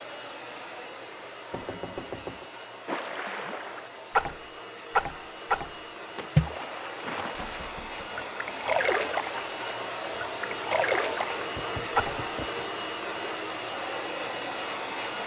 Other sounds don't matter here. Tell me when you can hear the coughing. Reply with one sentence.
The coughing can't be heard in this clip.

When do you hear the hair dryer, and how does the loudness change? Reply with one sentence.
The hair dryer can be heard from 0.0 to 15.2 s, getting louder.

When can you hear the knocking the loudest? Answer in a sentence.
The loudest moment of the knocking is at 2 seconds.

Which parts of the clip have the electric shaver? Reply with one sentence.
The electric shaver can't be heard in this clip.